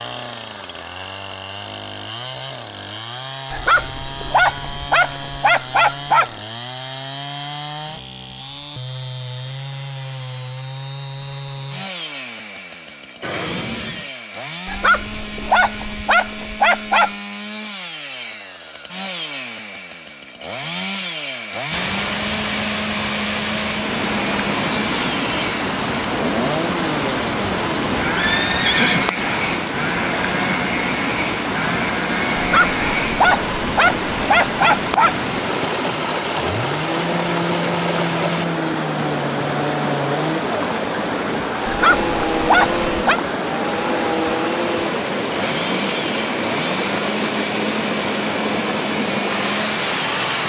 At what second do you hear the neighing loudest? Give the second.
29 s.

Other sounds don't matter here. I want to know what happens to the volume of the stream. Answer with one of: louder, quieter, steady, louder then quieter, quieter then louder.
steady.